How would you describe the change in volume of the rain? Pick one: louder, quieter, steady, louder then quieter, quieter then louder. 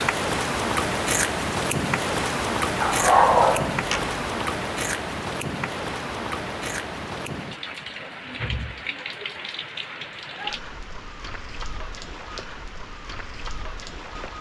quieter.